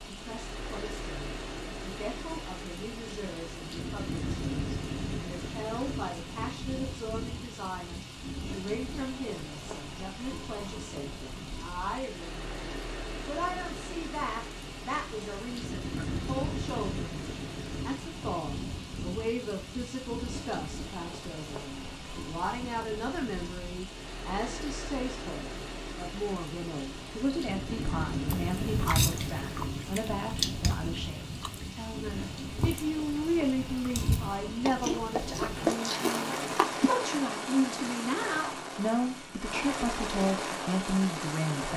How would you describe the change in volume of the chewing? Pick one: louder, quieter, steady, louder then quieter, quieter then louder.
quieter then louder.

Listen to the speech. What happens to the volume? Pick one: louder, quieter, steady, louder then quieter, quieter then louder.
louder.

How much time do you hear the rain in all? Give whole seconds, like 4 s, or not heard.
42 s.